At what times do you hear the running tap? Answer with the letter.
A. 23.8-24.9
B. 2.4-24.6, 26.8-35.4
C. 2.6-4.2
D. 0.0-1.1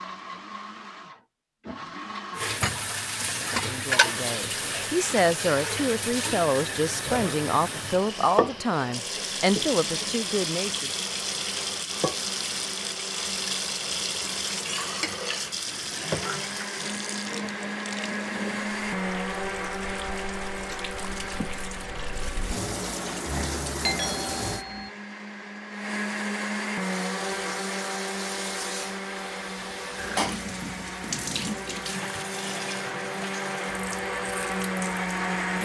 B.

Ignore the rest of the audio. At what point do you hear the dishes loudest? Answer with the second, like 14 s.
4 s.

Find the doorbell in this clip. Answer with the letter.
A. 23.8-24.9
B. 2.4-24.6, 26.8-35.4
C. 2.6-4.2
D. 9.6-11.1
A.